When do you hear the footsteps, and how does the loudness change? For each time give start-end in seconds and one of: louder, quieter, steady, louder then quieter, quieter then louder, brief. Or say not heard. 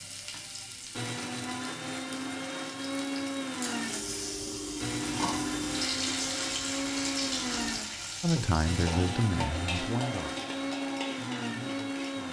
not heard.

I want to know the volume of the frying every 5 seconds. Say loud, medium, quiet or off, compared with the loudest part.
medium, loud, medium.